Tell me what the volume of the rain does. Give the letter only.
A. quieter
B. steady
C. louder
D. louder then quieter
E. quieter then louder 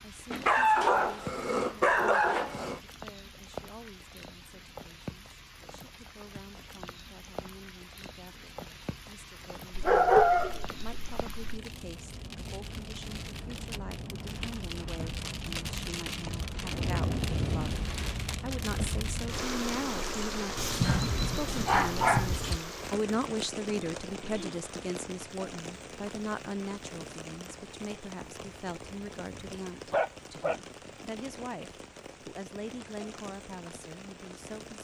D.